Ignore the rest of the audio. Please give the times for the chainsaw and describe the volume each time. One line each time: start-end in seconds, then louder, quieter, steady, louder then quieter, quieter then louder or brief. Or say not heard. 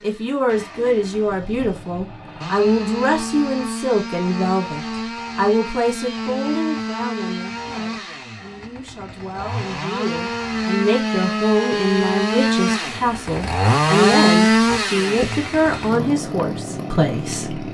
0.0-17.6 louder.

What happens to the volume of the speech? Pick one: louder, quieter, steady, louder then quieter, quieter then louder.
quieter then louder.